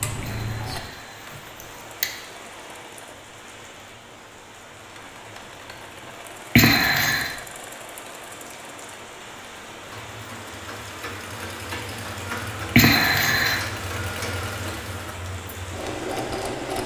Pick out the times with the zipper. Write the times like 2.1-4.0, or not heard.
not heard.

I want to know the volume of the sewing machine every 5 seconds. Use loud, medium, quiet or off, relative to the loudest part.
medium, quiet, loud, loud.